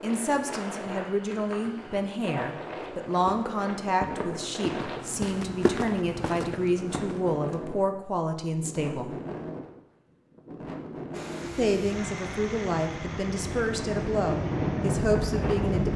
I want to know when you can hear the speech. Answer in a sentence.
The speech can be heard from 0.0 to 9.2 s and from 11.6 to 15.9 s.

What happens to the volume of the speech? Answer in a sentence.
The volume of the speech stays about the same.